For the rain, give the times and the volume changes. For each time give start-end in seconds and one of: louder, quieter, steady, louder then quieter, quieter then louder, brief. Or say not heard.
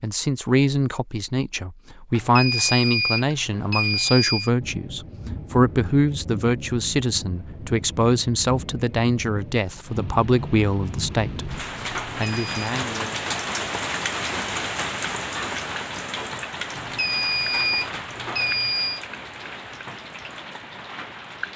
4.6-21.5 louder then quieter.